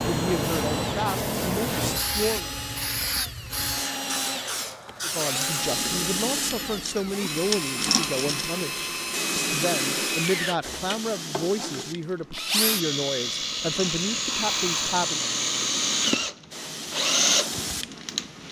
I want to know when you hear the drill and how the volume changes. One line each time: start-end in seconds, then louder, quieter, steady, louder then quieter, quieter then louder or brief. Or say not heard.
0.0-18.4 louder.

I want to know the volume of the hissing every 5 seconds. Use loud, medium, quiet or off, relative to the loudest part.
loud, loud, medium, medium.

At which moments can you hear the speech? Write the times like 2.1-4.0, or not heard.
0.0-2.5, 5.0-15.2.